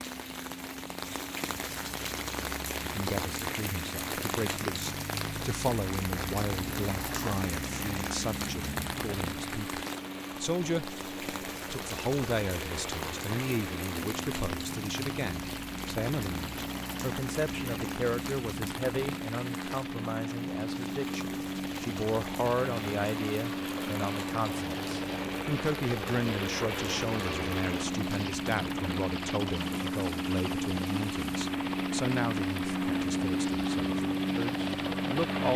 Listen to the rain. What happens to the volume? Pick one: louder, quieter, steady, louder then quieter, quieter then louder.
quieter.